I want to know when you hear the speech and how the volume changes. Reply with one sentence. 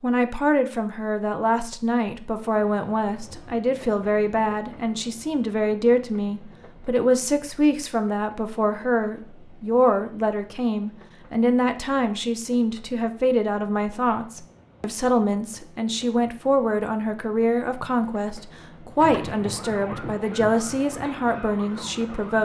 The speech can be heard from 0.0 to 22.3 s, at a steady volume.